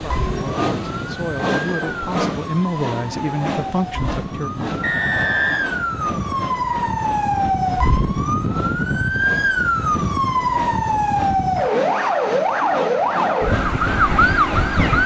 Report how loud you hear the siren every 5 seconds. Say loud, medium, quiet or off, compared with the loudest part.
medium, loud, loud.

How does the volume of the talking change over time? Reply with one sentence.
The loudness of the talking goes up.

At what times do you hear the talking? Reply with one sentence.
You can hear the talking from 0.0 to 4.7 s.